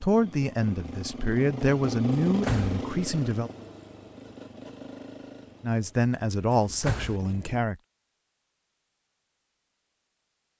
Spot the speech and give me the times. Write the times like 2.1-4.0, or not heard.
0.0-3.5, 5.6-7.8.